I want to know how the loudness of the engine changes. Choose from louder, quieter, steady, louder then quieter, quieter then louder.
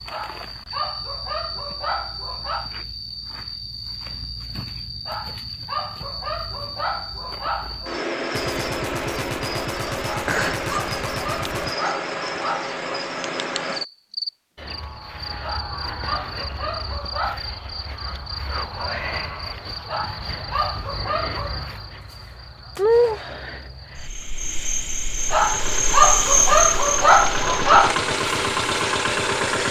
louder.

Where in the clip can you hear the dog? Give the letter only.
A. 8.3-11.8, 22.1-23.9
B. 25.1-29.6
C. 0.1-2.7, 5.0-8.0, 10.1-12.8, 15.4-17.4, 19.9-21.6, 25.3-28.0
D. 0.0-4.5
C.